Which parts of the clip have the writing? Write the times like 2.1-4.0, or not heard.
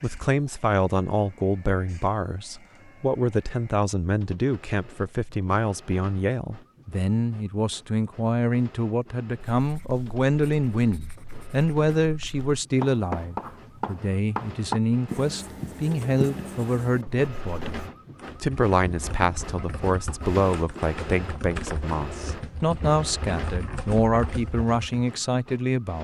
9.6-17.6.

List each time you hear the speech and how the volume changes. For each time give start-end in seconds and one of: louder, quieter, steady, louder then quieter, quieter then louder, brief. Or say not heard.
0.0-25.9 steady.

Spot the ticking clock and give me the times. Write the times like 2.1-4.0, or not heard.
not heard.